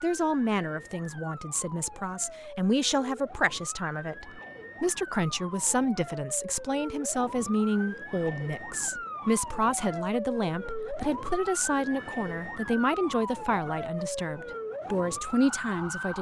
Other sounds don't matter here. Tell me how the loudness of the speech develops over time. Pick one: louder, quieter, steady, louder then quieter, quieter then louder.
steady.